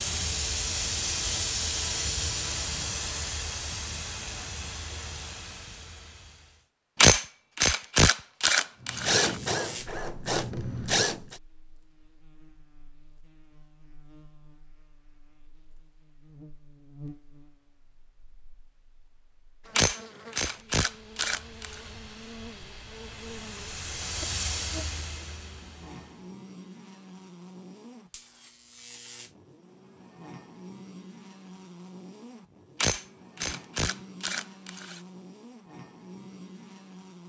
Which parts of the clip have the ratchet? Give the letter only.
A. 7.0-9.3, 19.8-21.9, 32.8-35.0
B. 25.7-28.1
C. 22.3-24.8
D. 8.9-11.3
A.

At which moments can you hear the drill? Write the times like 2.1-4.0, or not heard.
8.9-11.3.